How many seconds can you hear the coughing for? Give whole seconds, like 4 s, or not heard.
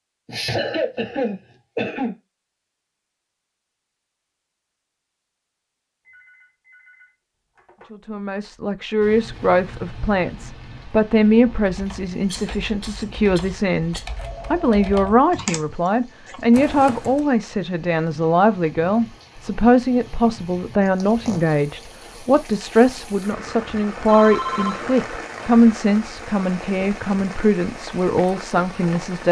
4 s.